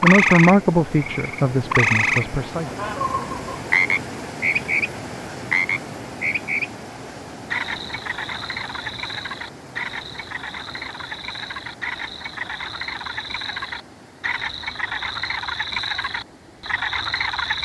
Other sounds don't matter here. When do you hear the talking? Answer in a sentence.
The talking can be heard from 0.0 to 2.7 s.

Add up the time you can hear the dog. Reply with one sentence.
The dog can't be heard in this clip.